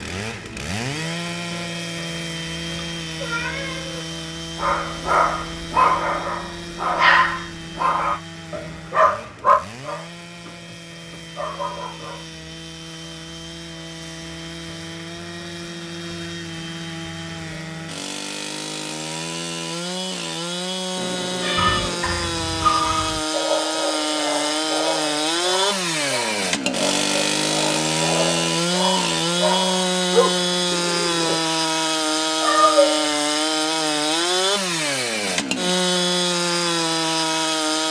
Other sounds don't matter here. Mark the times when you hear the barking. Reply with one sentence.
You can hear the barking from 4.5 to 12.2 s and from 21.6 to 31.4 s.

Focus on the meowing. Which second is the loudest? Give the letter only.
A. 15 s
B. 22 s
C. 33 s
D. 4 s
C.